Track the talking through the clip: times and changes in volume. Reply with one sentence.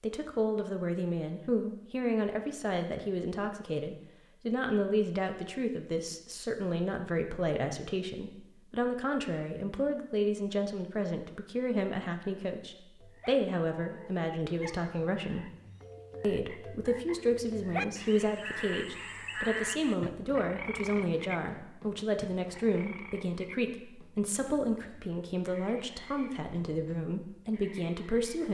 The talking can be heard from 0.0 to 15.5 s, at a steady volume; and from 16.2 to 28.4 s, at a steady volume.